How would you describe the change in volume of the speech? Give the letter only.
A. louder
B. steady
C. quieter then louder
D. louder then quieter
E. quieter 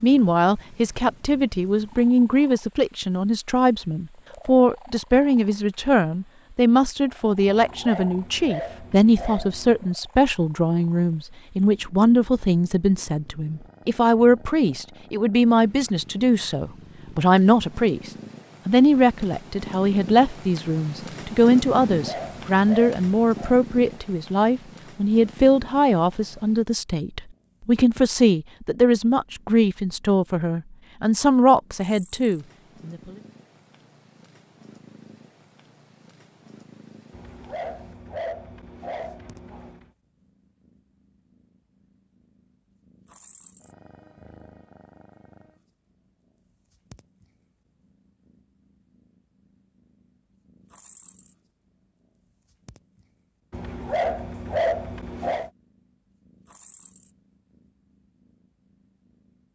B.